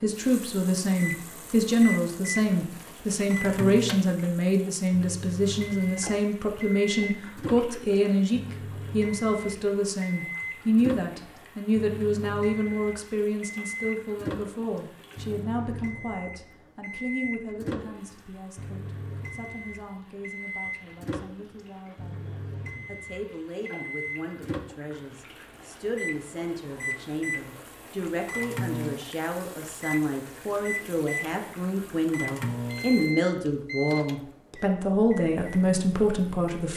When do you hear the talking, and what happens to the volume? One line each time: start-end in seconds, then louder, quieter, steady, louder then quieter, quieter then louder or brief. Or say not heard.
0.0-36.7 quieter then louder.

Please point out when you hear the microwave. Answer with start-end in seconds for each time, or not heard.
0.0-4.0, 4.9-36.5.